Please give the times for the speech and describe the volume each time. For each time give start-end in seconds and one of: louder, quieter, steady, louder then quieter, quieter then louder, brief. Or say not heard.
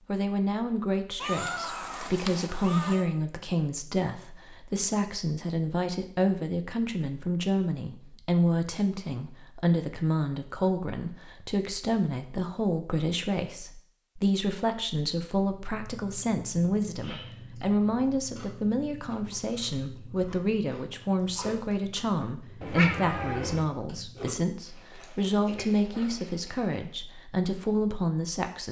0.1-28.6 steady.